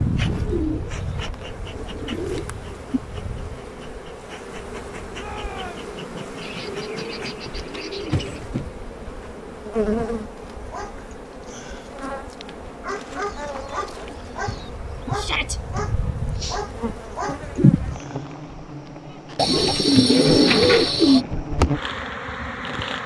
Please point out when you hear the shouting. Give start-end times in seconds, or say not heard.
5.2-5.9, 15.2-15.6.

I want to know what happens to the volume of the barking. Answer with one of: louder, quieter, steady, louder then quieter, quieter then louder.
louder.